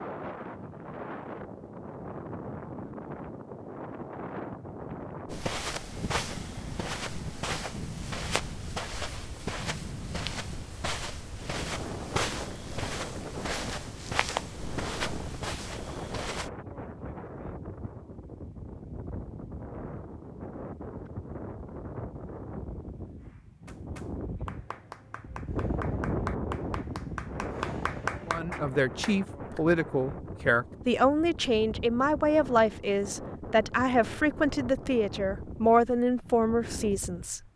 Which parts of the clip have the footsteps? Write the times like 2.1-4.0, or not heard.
5.2-16.5.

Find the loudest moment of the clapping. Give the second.
28 s.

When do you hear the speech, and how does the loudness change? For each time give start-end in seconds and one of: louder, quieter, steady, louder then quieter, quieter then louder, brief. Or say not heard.
28.2-37.5 steady.